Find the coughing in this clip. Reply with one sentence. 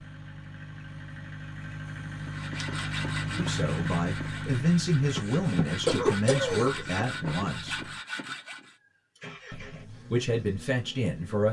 You can hear the coughing from 5.1 to 6.7 s.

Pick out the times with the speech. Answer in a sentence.
The speech can be heard from 3.3 to 7.9 s and from 9.5 to 11.4 s.